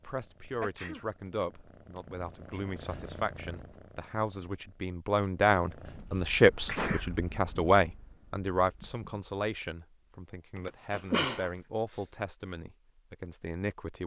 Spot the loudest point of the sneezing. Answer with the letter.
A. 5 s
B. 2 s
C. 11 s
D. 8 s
C.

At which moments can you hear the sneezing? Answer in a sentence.
You can hear the sneezing from 0.6 to 1.1 s, from 6.7 to 7.1 s and from 10.9 to 12.0 s.